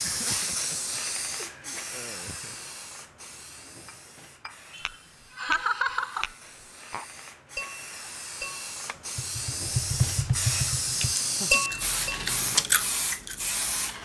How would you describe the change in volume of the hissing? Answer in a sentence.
The volume of the hissing goes down, then up.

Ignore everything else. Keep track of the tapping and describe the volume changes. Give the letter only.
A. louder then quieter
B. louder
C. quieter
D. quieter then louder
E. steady
B.